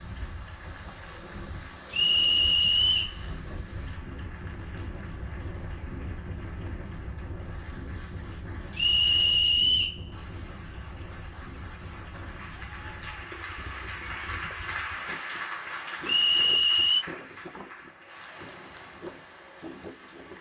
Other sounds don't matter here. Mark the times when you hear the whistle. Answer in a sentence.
The whistle can be heard from 1.9 to 3.1 s, from 8.8 to 10.0 s and from 16.1 to 17.1 s.